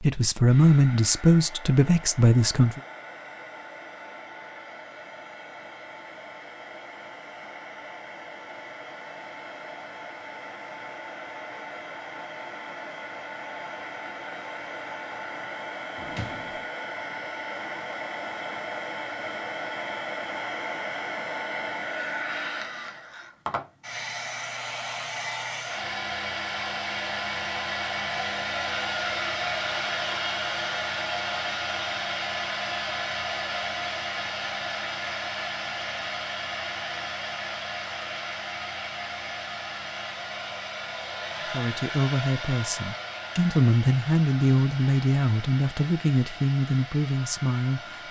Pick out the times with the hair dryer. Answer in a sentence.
The hair dryer can be heard from 0.0 to 48.0 s.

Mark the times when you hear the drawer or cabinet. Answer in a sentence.
The drawer or cabinet can be heard from 15.9 to 16.6 s.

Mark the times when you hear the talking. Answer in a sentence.
The talking can be heard from 0.0 to 2.8 s and from 41.5 to 48.0 s.